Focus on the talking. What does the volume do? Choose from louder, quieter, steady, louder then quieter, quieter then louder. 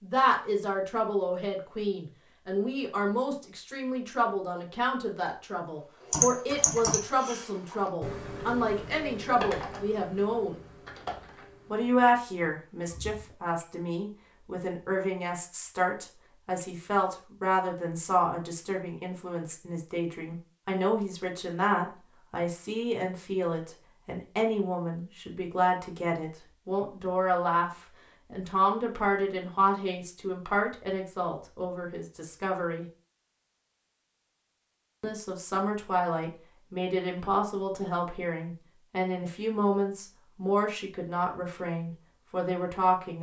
steady.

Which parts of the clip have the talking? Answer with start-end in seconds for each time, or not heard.
0.0-10.6, 11.7-32.9, 35.0-43.1.